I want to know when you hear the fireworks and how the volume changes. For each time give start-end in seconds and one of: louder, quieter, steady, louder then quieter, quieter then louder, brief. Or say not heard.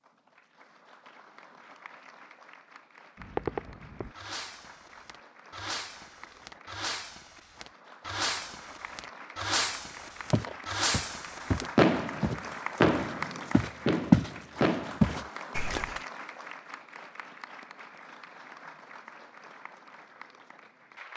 3.1-15.0 louder.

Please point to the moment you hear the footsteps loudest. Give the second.
14 s.